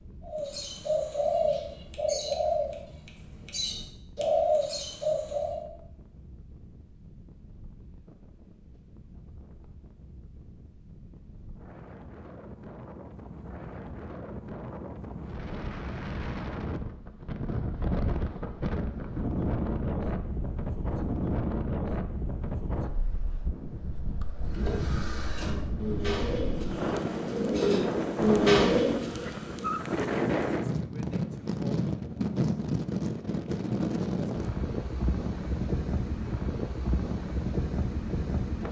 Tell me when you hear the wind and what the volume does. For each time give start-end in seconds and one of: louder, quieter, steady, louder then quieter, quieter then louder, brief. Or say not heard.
0.0-38.6 louder.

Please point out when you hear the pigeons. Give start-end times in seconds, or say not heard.
0.2-5.7, 24.4-29.8.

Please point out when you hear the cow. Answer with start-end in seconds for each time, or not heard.
not heard.